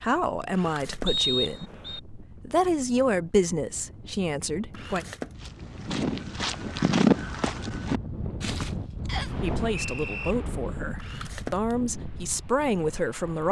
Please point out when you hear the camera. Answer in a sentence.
You can hear the camera from 0.5 to 1.1 s, from 4.7 to 5.5 s and from 10.9 to 11.8 s.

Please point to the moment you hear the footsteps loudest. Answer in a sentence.
The loudest moment of the footsteps is at 7 seconds.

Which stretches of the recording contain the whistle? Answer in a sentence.
The whistle can be heard from 1.1 to 2.0 s and from 9.1 to 10.3 s.